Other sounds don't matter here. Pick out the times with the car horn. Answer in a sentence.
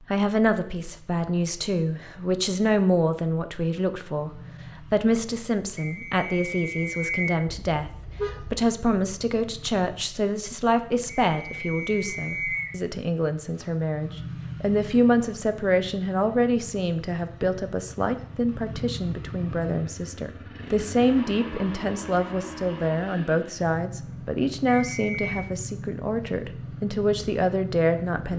You can hear the car horn from 7.5 to 8.7 s.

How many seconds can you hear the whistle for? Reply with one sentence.
The whistle can be heard for 4 seconds in total.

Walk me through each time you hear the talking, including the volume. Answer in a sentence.
You can hear the talking from 0.1 to 28.3 s, at a steady volume.